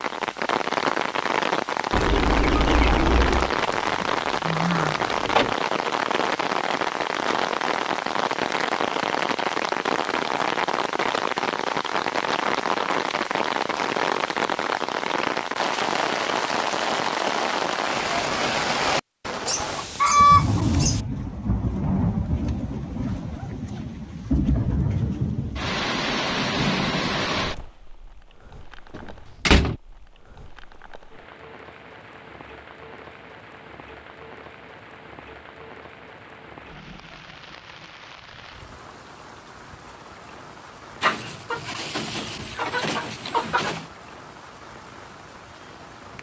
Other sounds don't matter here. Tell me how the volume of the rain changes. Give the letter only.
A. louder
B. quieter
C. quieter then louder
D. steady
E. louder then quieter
B.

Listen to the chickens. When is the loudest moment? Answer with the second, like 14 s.
20 s.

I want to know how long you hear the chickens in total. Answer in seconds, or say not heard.
6 s.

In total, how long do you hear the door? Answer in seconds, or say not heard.
3 s.